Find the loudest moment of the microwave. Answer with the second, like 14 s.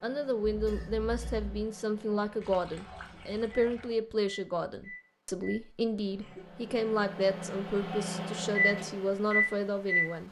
9 s.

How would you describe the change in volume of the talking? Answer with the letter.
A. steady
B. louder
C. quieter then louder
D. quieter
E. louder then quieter
A.